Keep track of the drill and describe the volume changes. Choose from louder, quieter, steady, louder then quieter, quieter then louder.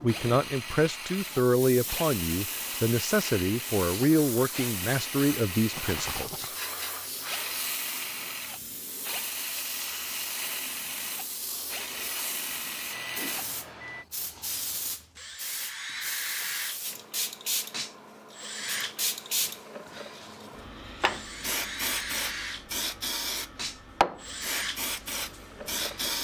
steady.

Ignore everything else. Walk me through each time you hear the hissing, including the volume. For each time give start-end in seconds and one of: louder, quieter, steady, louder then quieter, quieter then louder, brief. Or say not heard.
0.0-26.1 louder.